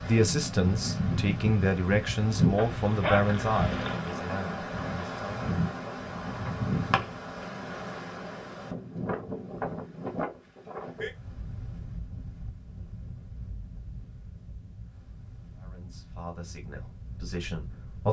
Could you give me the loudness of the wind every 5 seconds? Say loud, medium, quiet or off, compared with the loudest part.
loud, loud, medium, quiet.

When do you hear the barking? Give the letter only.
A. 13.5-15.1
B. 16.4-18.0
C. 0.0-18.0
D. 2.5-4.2
D.